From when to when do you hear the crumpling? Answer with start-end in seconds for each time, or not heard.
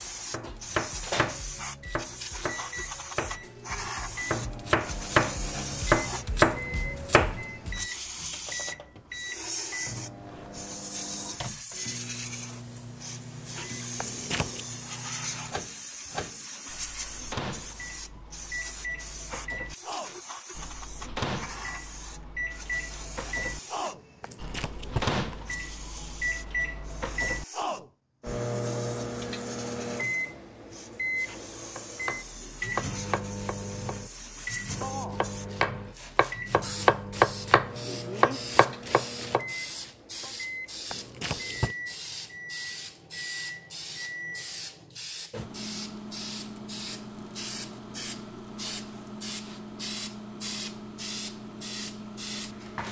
13.9-14.7, 24.2-25.2, 40.9-41.8.